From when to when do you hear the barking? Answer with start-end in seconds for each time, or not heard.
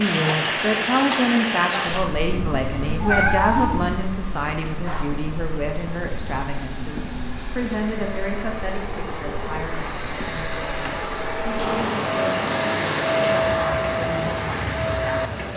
not heard.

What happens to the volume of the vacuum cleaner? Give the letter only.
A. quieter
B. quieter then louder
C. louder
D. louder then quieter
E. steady
C.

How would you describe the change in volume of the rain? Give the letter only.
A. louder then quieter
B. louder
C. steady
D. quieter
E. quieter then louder
E.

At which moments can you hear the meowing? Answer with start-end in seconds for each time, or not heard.
2.3-4.0.